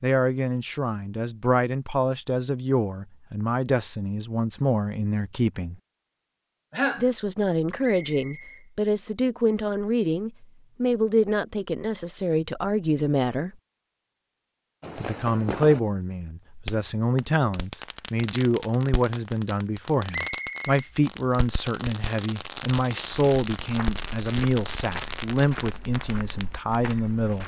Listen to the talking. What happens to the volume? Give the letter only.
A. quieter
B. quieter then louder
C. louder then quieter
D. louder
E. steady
E.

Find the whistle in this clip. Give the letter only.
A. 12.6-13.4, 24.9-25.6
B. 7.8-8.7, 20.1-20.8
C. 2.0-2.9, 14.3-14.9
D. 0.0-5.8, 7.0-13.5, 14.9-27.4
B.